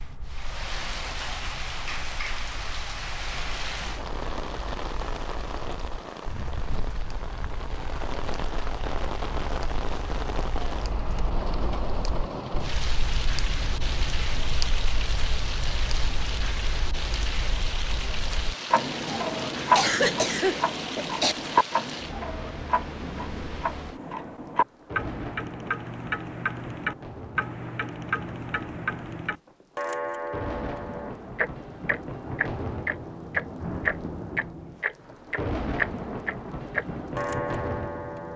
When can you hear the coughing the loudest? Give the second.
20 s.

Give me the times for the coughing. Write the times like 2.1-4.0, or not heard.
19.7-21.4.